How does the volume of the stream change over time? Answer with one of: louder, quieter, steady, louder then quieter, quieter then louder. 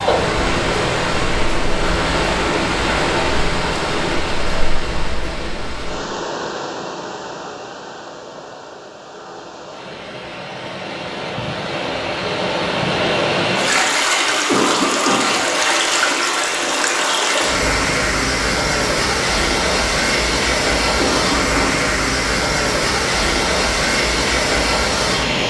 quieter then louder.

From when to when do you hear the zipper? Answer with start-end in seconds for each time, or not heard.
not heard.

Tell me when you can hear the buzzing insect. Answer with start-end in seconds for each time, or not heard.
not heard.